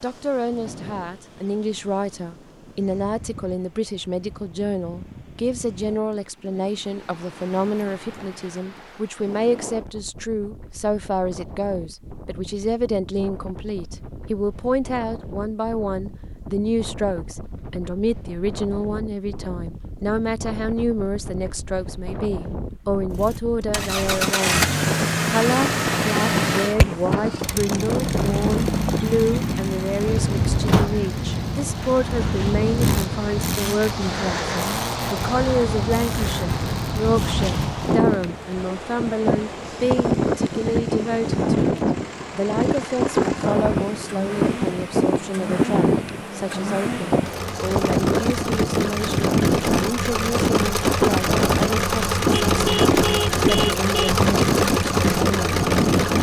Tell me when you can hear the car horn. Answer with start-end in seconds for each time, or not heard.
52.3-54.3.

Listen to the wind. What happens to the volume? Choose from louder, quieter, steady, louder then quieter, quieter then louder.
louder.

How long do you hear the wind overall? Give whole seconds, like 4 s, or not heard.
56 s.